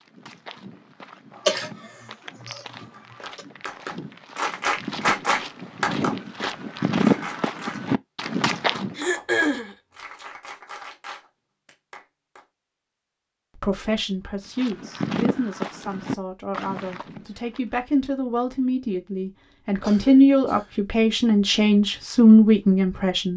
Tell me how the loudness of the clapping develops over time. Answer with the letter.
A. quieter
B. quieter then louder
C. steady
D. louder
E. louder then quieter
A.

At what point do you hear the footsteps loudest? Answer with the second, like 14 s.
7 s.